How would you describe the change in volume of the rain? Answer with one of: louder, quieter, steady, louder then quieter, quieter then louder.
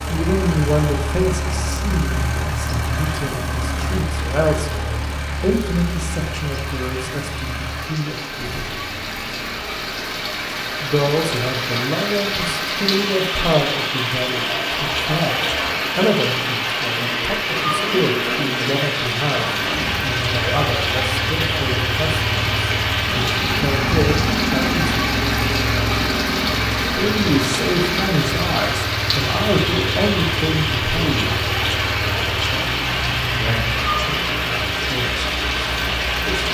louder.